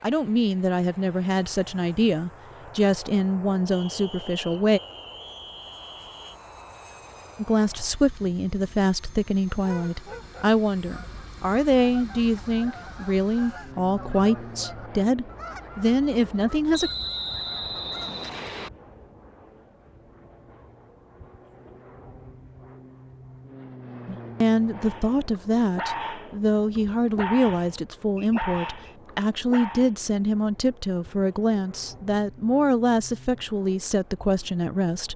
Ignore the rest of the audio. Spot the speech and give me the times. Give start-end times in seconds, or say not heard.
0.0-4.8, 7.3-16.9, 24.1-35.1.